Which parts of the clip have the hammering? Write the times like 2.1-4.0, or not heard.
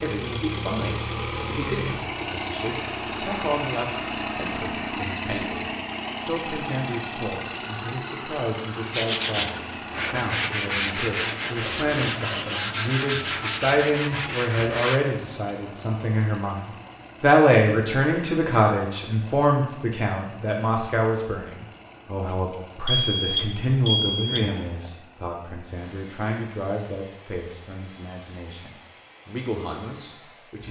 not heard.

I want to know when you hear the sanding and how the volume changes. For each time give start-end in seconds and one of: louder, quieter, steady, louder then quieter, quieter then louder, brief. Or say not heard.
8.9-15.0 steady.